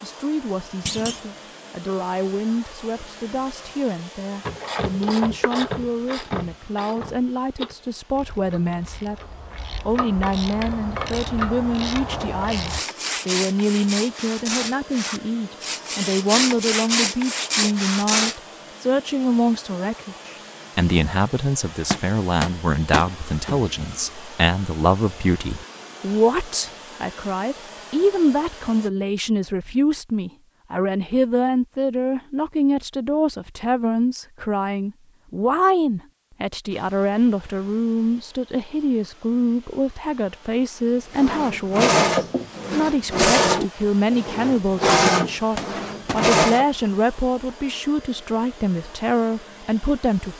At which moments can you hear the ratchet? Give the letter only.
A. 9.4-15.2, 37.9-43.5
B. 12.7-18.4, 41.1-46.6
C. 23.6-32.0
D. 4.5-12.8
D.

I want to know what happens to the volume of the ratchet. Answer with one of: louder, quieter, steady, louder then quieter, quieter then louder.
quieter then louder.